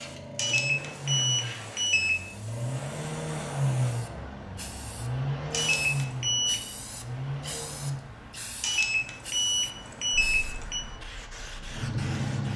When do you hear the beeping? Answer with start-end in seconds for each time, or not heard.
0.3-2.1, 5.5-6.5, 8.6-10.8.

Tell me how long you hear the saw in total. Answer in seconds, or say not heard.
not heard.